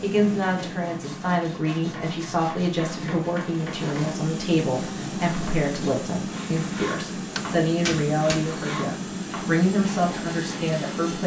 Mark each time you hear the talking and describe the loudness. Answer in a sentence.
The talking can be heard from 0.0 to 11.2 s, at a steady volume.